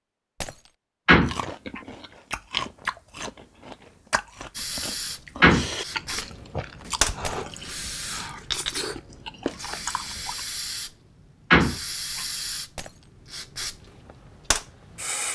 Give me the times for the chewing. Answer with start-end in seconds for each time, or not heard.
1.2-10.4.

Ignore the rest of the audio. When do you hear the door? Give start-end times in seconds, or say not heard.
1.1-1.8, 5.4-6.2, 11.5-12.2.